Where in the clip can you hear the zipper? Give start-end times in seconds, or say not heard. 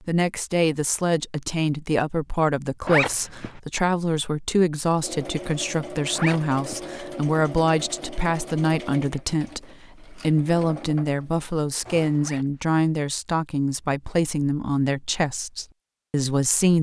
2.9-3.5, 6.2-6.8, 12.2-12.7.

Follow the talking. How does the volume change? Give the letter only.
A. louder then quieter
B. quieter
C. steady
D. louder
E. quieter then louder
C.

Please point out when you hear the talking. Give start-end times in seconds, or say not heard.
0.1-16.7.